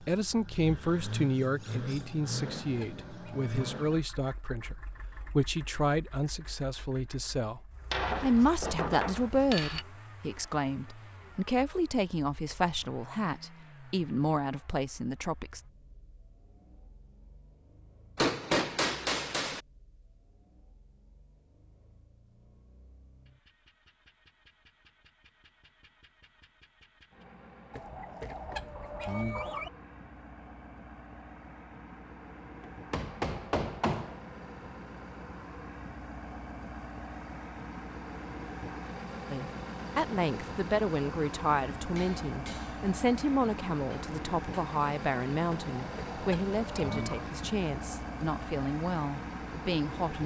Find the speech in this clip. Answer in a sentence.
You can hear the speech from 0.0 to 15.6 s and from 39.3 to 50.2 s.